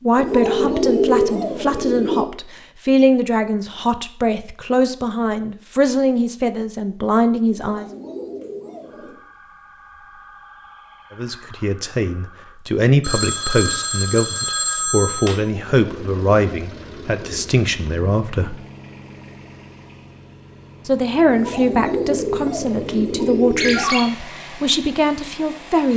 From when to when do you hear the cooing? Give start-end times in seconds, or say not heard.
0.1-2.2, 7.5-9.2, 15.4-17.5, 21.2-23.9.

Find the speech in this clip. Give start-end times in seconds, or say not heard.
0.0-7.8, 11.1-18.6, 20.9-25.9.